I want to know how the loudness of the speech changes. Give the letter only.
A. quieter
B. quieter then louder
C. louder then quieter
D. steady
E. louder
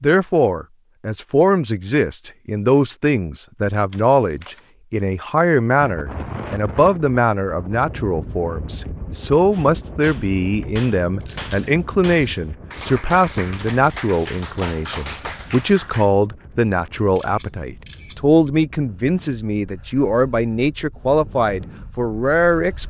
D.